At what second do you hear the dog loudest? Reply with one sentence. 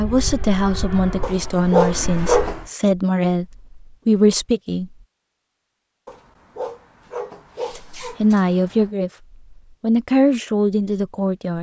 The loudest moment of the dog is at 2 seconds.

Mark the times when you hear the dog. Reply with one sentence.
The dog can be heard from 1.2 to 2.6 s and from 6.0 to 8.9 s.